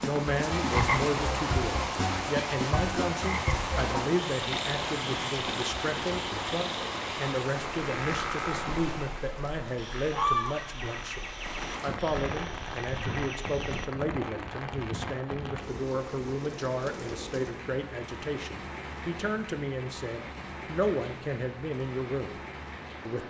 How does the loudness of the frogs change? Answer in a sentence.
The volume of the frogs goes down.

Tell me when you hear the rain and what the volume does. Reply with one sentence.
The rain can be heard from 0.0 to 23.2 s, getting quieter.